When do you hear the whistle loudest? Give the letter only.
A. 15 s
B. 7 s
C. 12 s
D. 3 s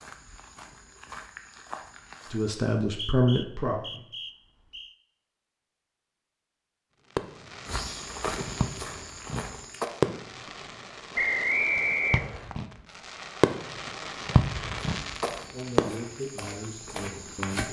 C.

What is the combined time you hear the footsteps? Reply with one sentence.
You can hear the footsteps for 7 seconds altogether.